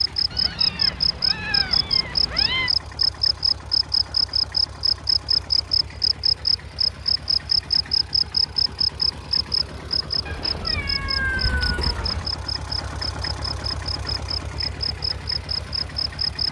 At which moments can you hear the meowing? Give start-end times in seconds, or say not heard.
0.3-2.7, 10.2-12.2.